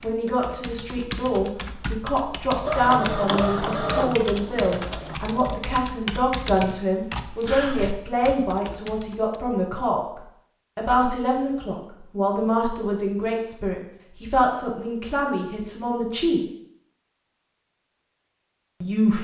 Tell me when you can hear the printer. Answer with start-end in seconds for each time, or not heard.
2.6-5.2.